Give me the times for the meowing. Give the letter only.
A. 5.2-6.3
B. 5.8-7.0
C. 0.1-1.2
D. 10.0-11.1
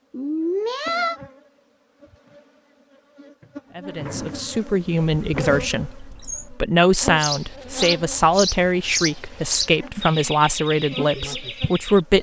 C.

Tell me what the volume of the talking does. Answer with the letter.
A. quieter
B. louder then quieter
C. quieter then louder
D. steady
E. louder
D.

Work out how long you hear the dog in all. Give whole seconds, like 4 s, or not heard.
not heard.